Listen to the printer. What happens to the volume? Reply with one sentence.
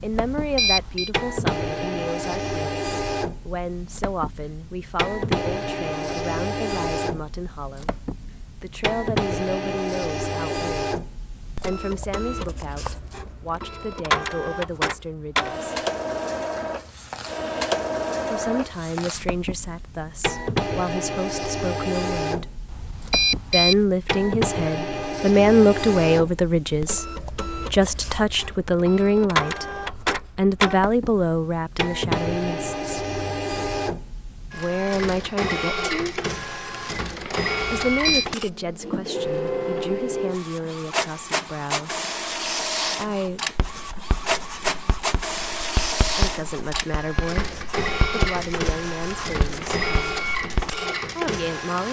The loudness of the printer stays about the same.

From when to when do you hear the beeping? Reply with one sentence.
The beeping can be heard from 0.1 to 1.1 s, from 22.6 to 23.9 s and from 37.8 to 38.2 s.